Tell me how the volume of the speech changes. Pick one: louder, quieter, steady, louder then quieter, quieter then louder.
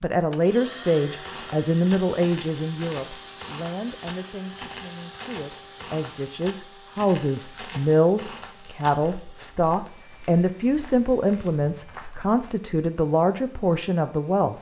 quieter then louder.